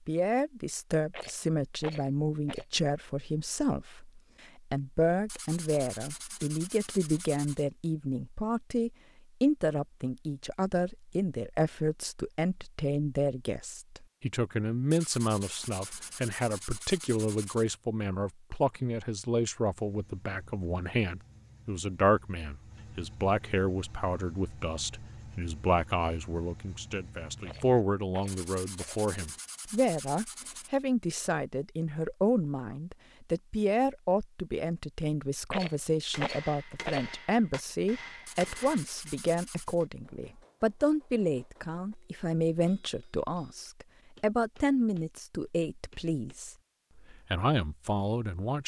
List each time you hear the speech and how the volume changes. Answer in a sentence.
The speech can be heard from 0.1 to 48.6 s, at a steady volume.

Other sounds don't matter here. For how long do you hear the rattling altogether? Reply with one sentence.
The rattling can be heard for 5 seconds in total.